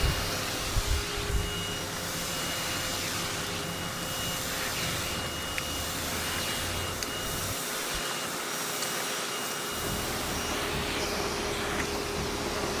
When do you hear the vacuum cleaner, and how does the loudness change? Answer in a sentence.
The vacuum cleaner can be heard from 0.0 to 12.7 s, at a steady volume.